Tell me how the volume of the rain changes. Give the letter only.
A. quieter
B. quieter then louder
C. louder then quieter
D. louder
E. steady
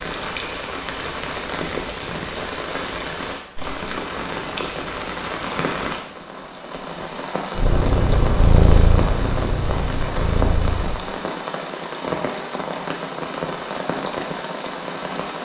E.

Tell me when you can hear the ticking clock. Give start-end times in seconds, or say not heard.
not heard.